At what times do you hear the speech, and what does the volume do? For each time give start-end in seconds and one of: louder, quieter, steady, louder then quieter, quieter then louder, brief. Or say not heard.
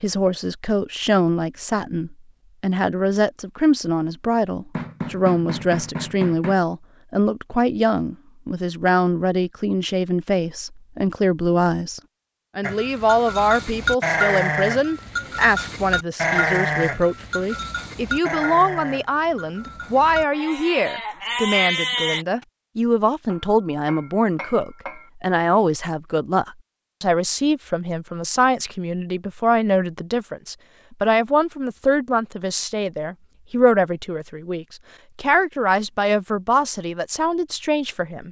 0.0-38.2 steady.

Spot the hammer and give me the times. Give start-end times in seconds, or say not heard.
4.7-6.5, 23.2-25.1.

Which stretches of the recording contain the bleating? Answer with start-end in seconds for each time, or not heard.
12.6-22.2.